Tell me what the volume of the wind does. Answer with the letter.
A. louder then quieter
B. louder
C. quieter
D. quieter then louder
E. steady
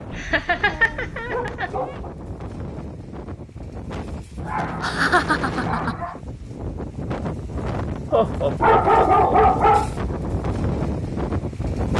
B.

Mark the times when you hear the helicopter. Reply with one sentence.
You can't hear the helicopter here.